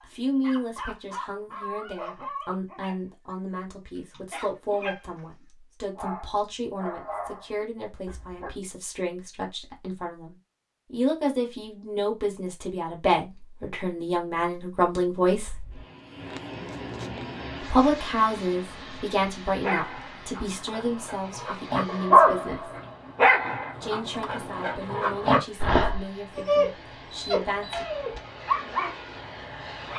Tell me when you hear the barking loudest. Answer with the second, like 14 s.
22 s.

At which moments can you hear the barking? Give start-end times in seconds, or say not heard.
0.0-8.5, 19.6-29.9.